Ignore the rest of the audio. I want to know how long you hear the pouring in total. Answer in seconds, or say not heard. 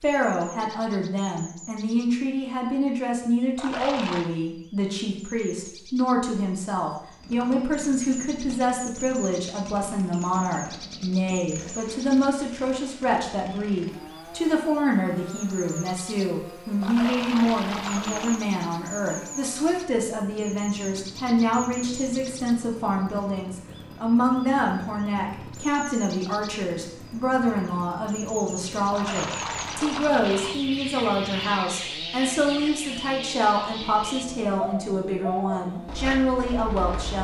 4 s.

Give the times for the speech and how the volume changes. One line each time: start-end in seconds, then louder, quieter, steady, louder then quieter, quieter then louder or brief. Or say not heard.
0.0-37.1 steady.